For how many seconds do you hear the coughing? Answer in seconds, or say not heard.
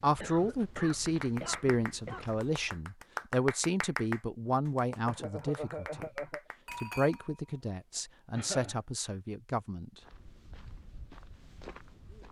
4 s.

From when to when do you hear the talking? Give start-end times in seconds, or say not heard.
0.0-6.1, 6.8-9.9.